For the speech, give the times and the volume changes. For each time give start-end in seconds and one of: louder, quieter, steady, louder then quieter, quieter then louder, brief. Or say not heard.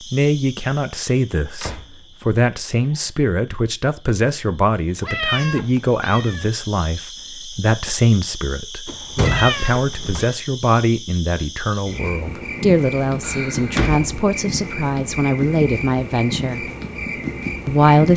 0.1-16.7 steady
17.6-18.1 brief.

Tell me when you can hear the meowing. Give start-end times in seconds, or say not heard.
5.0-6.5, 9.2-10.2.